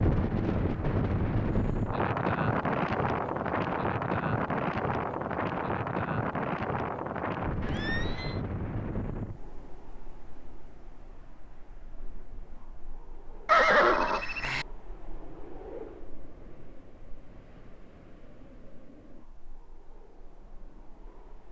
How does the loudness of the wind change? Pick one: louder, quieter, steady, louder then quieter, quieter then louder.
quieter.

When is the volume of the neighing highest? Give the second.
14 s.